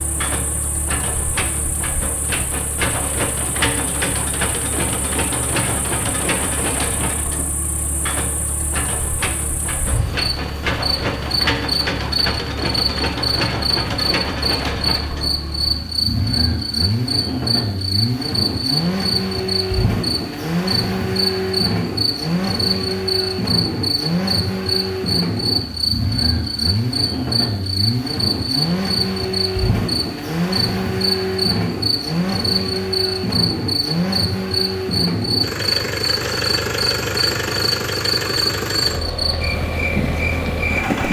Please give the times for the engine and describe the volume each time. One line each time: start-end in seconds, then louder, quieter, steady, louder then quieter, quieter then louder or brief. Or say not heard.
0.0-41.0 steady.